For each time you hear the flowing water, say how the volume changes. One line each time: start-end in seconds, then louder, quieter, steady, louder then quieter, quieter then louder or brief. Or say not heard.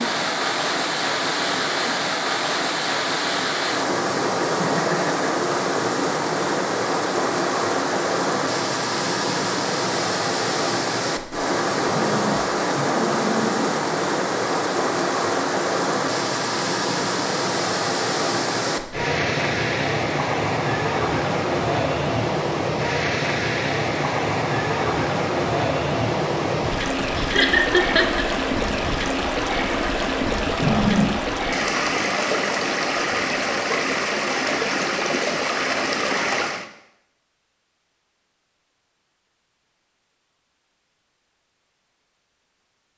0.0-36.6 steady.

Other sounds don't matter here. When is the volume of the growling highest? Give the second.
31 s.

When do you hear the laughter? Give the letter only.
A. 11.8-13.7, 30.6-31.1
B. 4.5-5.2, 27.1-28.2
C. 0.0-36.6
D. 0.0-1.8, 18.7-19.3
B.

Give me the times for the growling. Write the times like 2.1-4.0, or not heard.
11.8-13.7, 30.6-31.1.